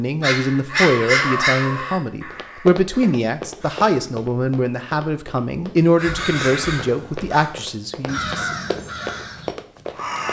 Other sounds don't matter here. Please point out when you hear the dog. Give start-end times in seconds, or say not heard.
0.2-1.8.